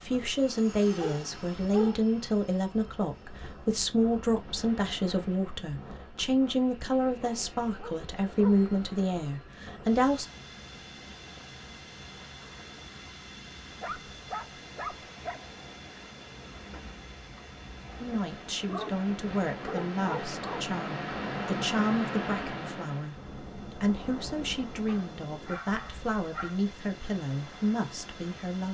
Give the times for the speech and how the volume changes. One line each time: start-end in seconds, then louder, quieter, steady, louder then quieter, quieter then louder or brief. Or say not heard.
0.0-10.2 steady
18.0-28.6 steady.